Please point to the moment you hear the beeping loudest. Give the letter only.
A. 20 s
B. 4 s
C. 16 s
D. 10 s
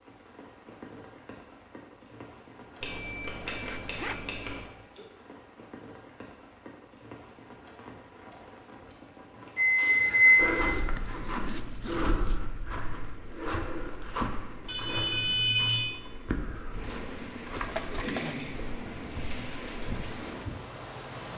D.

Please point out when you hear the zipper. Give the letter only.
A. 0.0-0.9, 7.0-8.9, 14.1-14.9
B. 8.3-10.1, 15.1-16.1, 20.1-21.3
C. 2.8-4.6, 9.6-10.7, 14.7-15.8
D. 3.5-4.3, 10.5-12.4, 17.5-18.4
D.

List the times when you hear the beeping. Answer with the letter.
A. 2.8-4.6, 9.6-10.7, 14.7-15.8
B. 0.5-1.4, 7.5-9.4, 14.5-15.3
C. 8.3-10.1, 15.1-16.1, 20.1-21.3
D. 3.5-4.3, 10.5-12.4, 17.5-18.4
A.